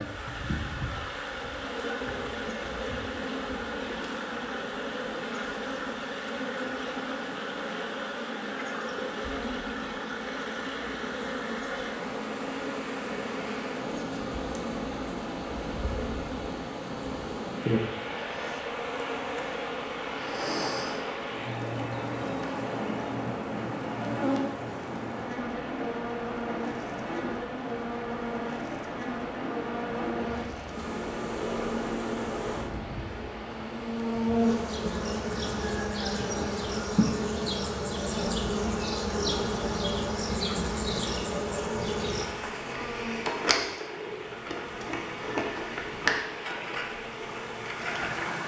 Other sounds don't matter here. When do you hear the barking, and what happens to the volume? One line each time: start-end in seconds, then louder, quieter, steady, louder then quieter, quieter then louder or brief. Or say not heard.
not heard.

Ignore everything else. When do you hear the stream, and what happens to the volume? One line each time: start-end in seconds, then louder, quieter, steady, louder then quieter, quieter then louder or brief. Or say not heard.
0.0-48.4 steady.